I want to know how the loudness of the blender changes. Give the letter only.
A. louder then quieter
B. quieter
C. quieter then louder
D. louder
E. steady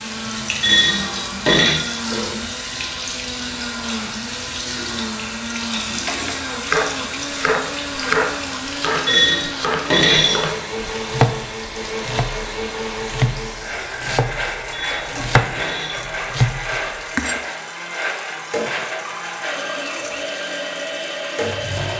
E.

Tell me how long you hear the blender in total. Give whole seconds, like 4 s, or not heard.
22 s.